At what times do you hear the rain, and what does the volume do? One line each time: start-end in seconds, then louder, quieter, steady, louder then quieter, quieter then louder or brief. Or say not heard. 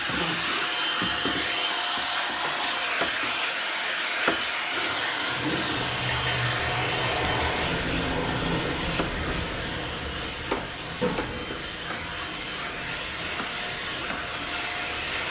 4.7-15.2 quieter.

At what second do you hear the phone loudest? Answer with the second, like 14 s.
1 s.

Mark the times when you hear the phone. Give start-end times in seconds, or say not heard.
0.6-2.0, 6.0-7.5, 11.2-12.8.